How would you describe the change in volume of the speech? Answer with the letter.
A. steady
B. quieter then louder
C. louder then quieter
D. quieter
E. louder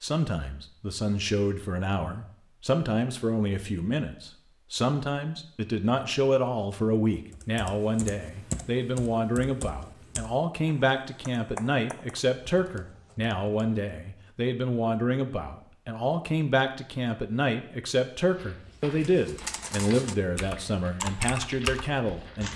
A.